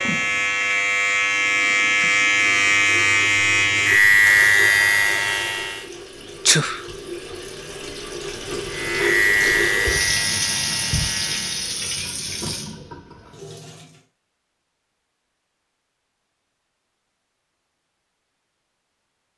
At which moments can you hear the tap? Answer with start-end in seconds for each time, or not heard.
2.5-14.0.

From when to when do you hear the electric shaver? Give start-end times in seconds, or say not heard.
0.0-5.9, 8.7-11.8.